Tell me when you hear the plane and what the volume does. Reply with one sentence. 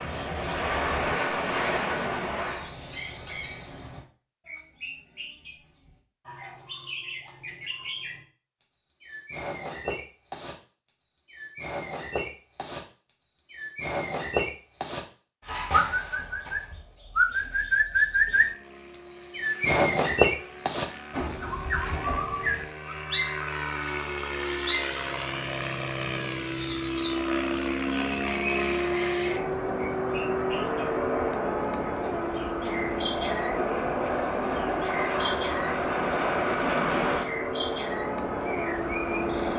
You can hear the plane briefly from 0.0 to 2.8 s; and from 18.2 to 39.5 s, getting louder.